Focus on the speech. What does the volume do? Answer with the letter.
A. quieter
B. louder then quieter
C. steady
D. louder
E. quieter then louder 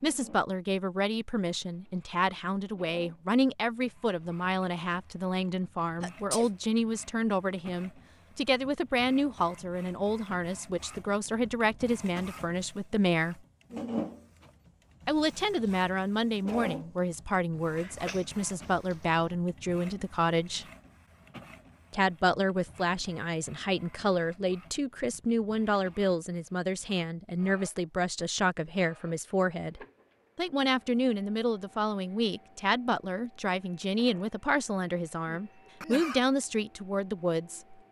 C.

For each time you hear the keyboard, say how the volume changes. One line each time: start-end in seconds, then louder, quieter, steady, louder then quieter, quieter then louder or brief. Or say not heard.
not heard.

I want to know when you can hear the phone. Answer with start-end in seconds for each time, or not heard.
not heard.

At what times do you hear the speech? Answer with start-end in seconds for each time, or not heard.
0.0-13.4, 15.1-20.6, 21.9-37.8.